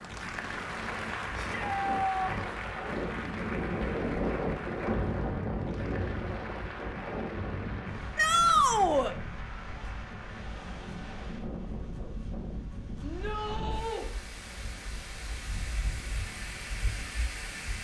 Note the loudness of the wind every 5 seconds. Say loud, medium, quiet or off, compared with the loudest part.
loud, loud, medium, medium.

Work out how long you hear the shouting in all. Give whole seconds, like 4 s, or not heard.
3 s.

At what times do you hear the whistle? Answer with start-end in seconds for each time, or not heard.
not heard.